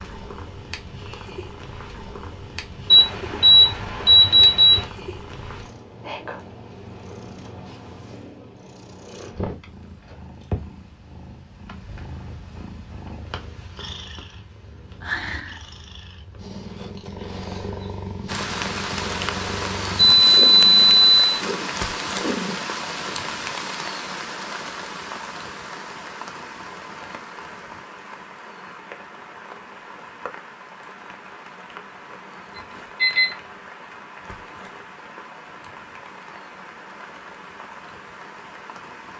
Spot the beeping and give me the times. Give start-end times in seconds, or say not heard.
2.9-4.8, 20.1-21.4, 32.5-33.4.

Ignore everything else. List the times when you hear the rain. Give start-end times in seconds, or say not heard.
18.2-39.1.